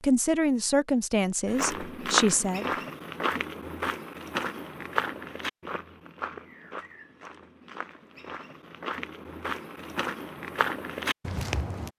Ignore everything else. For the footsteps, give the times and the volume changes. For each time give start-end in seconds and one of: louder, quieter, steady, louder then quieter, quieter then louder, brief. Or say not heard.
1.4-11.9 quieter then louder.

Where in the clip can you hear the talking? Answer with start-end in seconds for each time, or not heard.
0.0-2.7.